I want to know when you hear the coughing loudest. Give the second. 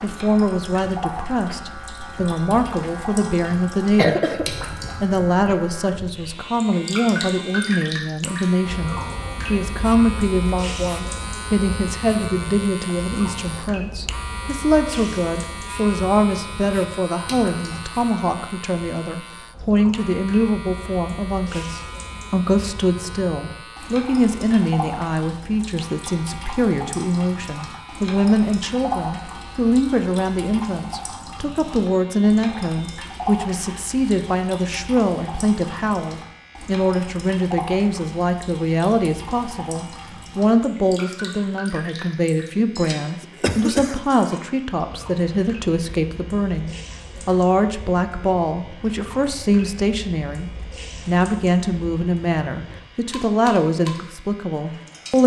4 s.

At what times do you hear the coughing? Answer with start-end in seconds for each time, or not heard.
4.0-4.5, 43.4-44.0.